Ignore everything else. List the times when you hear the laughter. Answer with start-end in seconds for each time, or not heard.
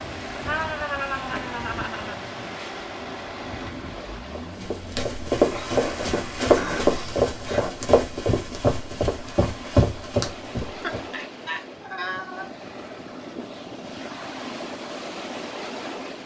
0.5-2.2, 5.5-7.8, 10.8-12.5.